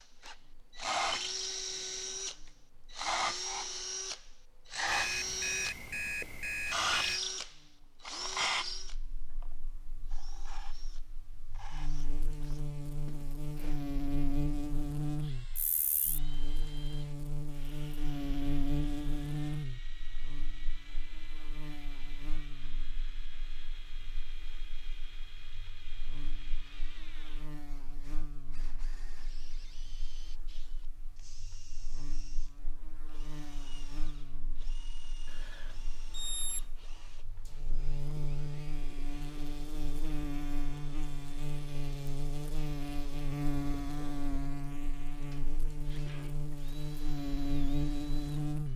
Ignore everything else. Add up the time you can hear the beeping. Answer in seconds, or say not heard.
4 s.